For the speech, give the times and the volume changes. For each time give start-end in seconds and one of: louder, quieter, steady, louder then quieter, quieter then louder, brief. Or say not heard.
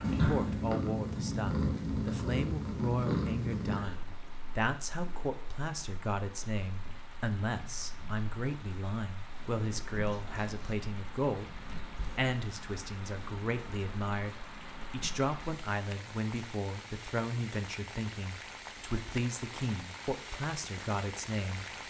0.1-21.6 steady.